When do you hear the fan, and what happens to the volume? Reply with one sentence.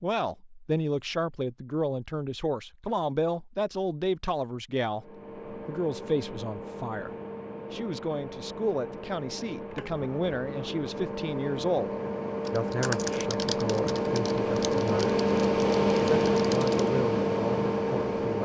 You can hear the fan from 5.0 to 18.4 s, getting louder.